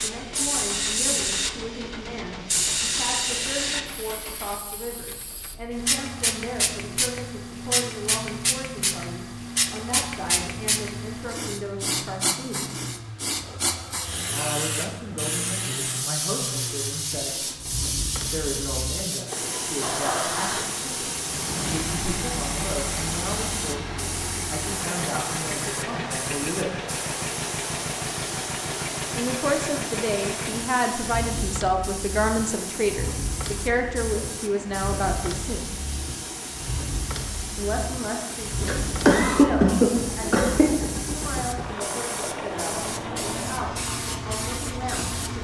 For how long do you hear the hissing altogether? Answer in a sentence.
You can hear the hissing for 45 seconds altogether.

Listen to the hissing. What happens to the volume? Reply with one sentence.
The loudness of the hissing goes down.